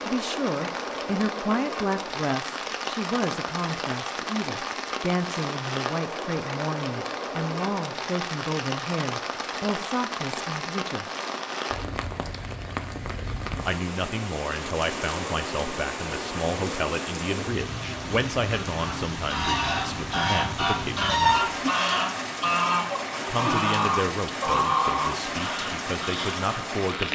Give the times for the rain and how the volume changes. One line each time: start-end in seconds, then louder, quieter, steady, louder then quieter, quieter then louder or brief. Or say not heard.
0.0-27.1 steady.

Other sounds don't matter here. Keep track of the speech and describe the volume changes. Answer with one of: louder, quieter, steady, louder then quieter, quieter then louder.
steady.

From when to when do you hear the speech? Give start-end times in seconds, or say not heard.
0.0-11.1, 13.7-21.6, 23.2-27.1.